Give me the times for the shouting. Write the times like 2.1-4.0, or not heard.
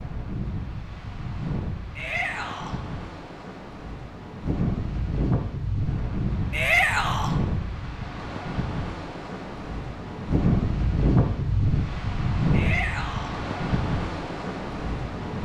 1.9-2.8, 6.5-7.3, 12.5-13.3.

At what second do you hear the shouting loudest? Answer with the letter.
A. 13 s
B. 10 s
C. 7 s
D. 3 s
C.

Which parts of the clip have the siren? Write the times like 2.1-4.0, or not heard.
not heard.